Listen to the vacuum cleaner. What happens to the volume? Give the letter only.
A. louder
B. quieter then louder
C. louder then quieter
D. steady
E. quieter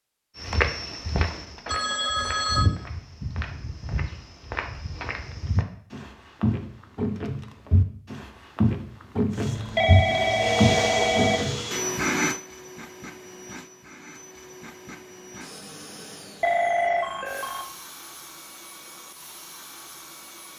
E.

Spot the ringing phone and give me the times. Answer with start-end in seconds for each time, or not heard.
1.6-2.7, 9.3-11.4, 16.4-17.6.